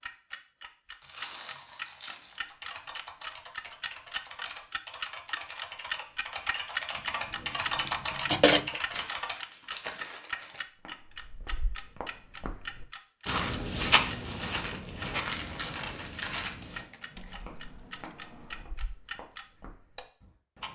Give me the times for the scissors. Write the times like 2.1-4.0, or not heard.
6.9-8.7, 16.6-18.6.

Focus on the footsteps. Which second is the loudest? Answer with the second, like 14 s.
14 s.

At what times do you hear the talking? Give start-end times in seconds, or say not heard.
not heard.